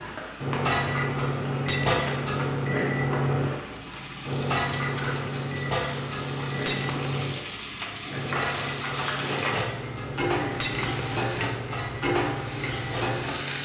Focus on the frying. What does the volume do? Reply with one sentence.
The loudness of the frying goes up.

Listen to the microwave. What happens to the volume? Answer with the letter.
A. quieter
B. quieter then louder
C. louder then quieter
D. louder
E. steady
A.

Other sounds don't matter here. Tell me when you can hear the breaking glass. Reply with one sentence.
The breaking glass can be heard from 1.6 to 2.9 s, from 6.7 to 7.2 s and from 10.6 to 11.8 s.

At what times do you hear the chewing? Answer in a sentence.
The chewing can't be heard in this clip.